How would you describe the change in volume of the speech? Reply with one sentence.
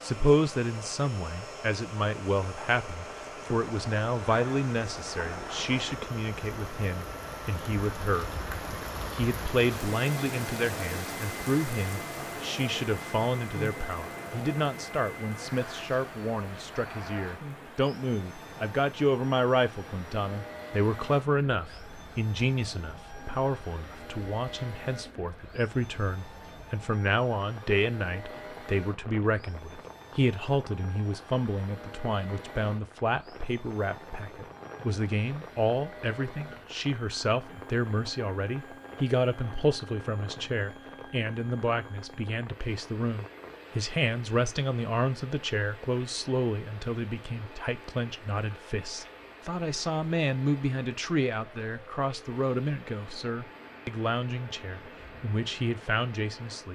The loudness of the speech stays about the same.